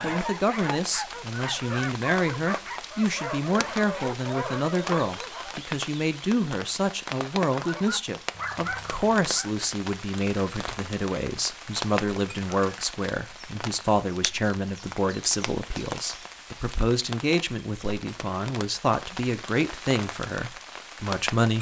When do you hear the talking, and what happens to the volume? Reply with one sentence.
The talking can be heard from 0.0 to 21.5 s, at a steady volume.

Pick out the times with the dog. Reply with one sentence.
The dog can be heard from 0.0 to 5.6 s and from 7.5 to 9.7 s.